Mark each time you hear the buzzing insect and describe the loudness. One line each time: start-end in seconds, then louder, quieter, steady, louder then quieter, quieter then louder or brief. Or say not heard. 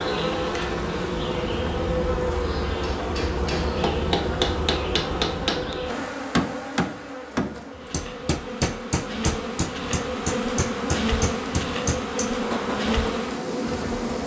0.0-14.2 quieter then louder.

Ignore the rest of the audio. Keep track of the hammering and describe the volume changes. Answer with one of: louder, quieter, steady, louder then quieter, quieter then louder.
steady.